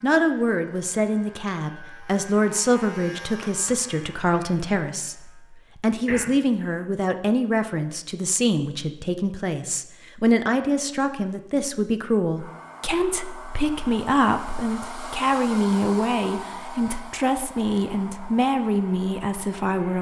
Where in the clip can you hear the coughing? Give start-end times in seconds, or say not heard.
6.0-6.8.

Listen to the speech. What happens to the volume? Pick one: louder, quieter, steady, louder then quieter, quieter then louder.
steady.